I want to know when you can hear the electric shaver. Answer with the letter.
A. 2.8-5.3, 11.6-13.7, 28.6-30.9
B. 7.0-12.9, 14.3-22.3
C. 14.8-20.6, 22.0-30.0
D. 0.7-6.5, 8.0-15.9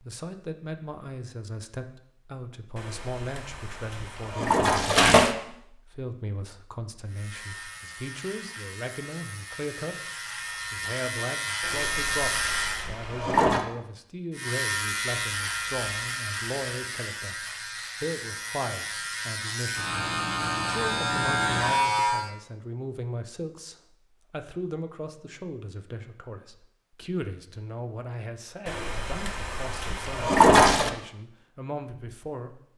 B.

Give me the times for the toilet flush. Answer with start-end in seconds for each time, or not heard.
2.8-5.3, 11.6-13.7, 28.6-30.9.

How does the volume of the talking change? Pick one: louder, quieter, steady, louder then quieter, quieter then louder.
steady.